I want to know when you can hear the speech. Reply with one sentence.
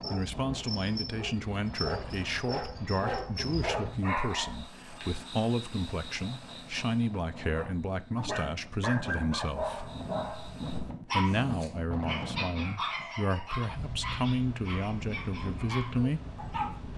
The speech can be heard from 0.0 to 9.9 s and from 11.1 to 16.2 s.